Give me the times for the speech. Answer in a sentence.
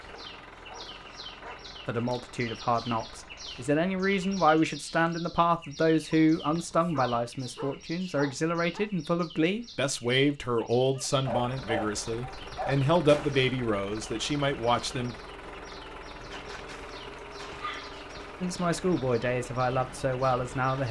You can hear the speech from 1.9 to 15.2 s and from 18.4 to 20.8 s.